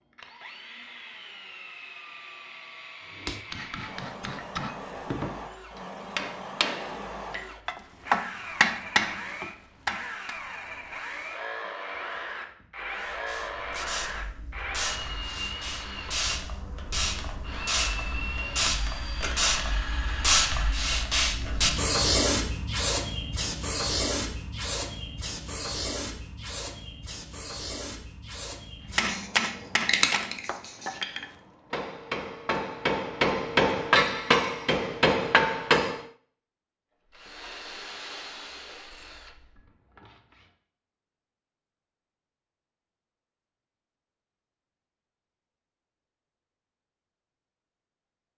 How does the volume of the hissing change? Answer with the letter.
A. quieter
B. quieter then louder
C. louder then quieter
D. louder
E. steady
C.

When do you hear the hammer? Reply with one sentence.
You can hear the hammer from 3.1 to 10.4 s and from 28.9 to 36.0 s.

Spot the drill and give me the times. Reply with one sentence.
The drill can be heard from 0.1 to 20.9 s and from 37.0 to 40.5 s.